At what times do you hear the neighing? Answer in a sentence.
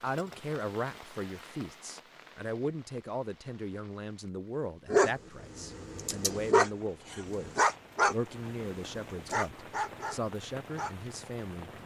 You can't hear the neighing here.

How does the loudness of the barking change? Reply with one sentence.
The loudness of the barking goes up, then down.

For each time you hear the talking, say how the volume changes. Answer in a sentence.
The talking can be heard from 0.0 to 11.7 s, at a steady volume.